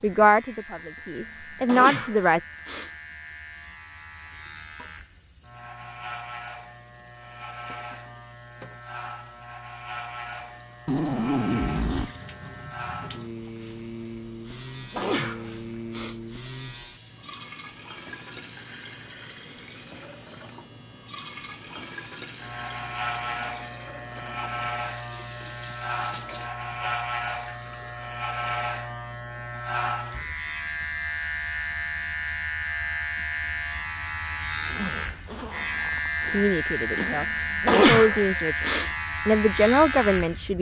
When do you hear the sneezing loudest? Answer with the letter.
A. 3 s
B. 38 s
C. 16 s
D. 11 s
B.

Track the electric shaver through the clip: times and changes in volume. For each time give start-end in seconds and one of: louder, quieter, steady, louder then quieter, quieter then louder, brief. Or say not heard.
0.0-40.5 louder.